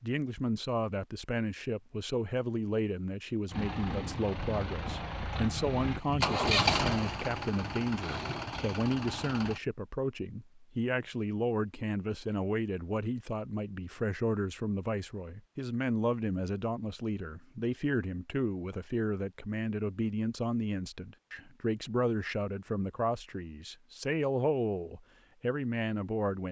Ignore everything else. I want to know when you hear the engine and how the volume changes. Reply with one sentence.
The engine can be heard from 3.5 to 9.6 s, getting louder then quieter.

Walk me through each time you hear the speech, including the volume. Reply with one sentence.
You can hear the speech from 0.0 to 26.4 s, at a steady volume.